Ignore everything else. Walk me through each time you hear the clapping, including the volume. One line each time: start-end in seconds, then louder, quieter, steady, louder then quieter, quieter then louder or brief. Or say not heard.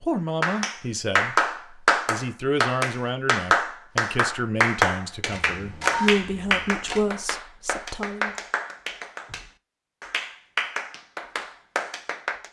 0.4-12.4 quieter.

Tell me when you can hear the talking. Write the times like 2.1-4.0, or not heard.
0.0-8.3.